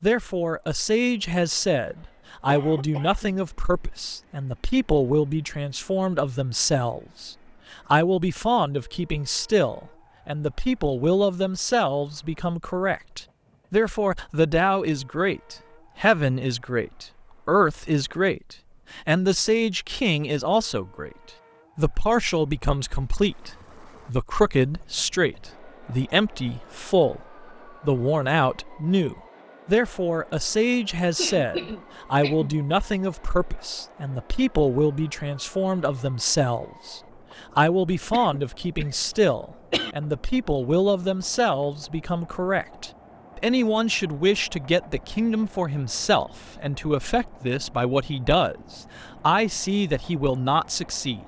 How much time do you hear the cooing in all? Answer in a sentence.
The cooing can't be heard in this clip.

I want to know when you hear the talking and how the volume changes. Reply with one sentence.
The talking can be heard from 0.0 to 21.1 s, at a steady volume; and from 21.8 to 51.2 s, at a steady volume.